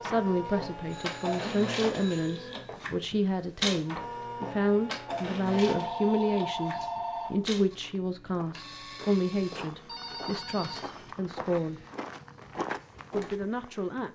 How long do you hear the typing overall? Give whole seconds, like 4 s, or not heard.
not heard.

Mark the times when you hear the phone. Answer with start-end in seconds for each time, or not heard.
0.5-2.8, 5.5-7.4, 9.6-11.1.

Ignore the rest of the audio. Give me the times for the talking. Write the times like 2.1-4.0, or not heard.
0.0-11.8, 13.1-14.0.